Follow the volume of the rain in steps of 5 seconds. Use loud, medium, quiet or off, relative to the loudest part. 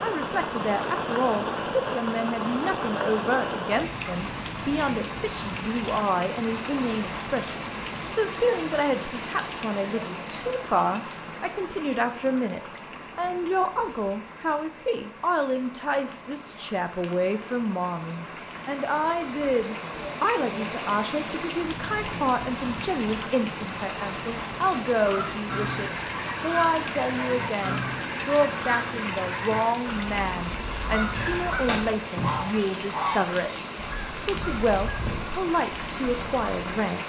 loud, loud, medium, medium, loud, loud, loud, loud.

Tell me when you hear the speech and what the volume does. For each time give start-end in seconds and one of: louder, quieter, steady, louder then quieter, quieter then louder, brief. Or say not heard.
0.0-37.0 steady.